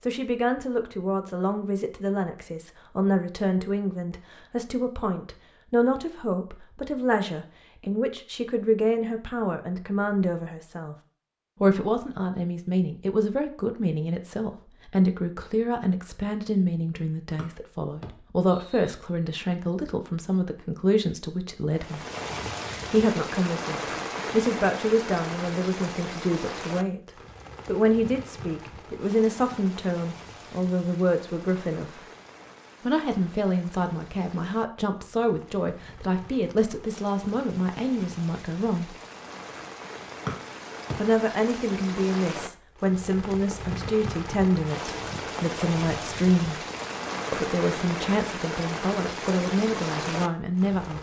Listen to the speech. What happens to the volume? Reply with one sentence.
The loudness of the speech stays about the same.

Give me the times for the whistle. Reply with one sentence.
You can hear the whistle from 17.4 to 18.9 s and from 40.2 to 41.0 s.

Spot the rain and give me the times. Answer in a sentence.
The rain can be heard from 21.7 to 50.9 s.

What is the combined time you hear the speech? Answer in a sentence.
The speech can be heard for 46 seconds in total.